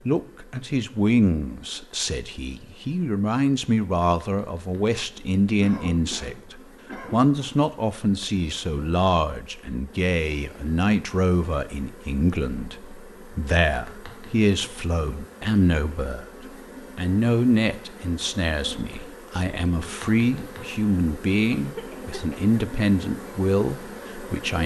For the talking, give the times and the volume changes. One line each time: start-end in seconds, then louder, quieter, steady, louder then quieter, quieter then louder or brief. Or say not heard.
0.1-24.6 steady.